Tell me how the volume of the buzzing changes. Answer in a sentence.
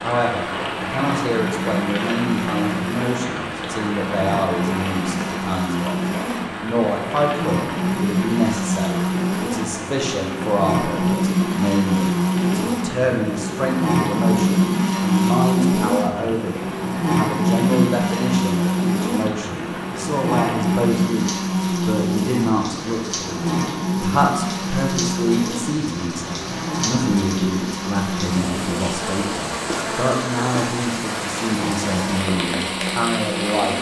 The loudness of the buzzing goes up, then down.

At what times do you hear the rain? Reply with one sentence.
You can hear the rain from 0.0 to 33.7 s.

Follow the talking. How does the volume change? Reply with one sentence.
The loudness of the talking stays about the same.